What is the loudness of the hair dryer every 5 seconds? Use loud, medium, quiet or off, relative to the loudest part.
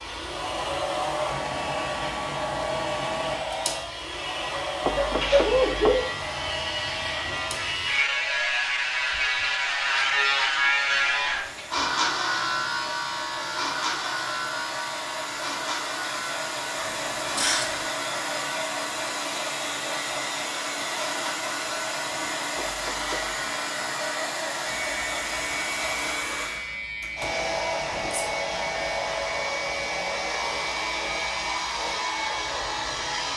loud, medium, medium, loud, loud, loud, loud.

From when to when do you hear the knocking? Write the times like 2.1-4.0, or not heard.
4.8-6.0, 22.6-23.4.